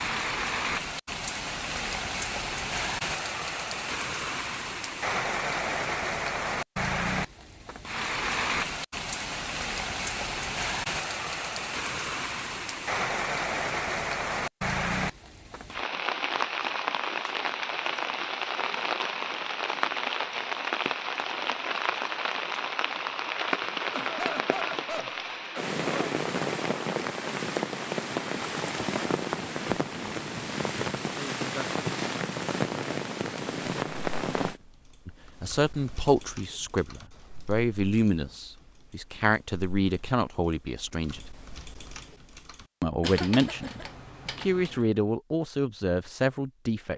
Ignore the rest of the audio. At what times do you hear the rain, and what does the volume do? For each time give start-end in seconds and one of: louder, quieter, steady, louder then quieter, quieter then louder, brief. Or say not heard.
0.0-34.6 steady.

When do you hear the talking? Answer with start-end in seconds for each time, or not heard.
35.0-41.2, 42.8-46.9.